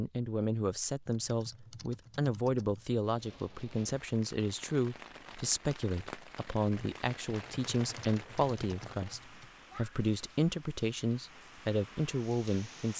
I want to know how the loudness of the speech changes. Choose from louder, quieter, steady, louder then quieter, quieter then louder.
steady.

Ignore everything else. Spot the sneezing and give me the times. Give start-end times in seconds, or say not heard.
not heard.